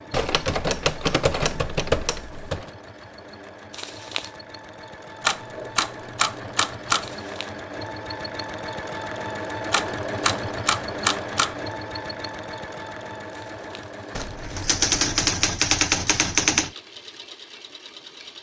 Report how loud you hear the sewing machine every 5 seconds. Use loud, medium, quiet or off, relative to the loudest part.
medium, loud, loud, medium.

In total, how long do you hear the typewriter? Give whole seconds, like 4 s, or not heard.
9 s.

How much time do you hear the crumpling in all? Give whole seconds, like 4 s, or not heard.
3 s.